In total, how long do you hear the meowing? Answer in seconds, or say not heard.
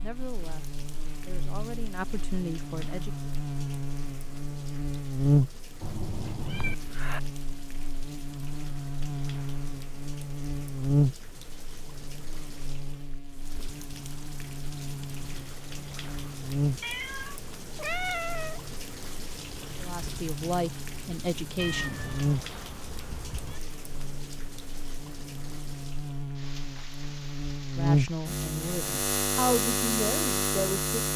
5 s.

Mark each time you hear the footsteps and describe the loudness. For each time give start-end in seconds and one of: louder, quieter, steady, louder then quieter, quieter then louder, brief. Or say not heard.
not heard.